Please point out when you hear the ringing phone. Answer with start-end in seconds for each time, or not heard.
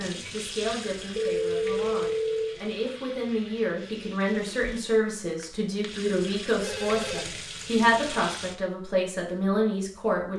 1.1-2.5, 6.6-7.3.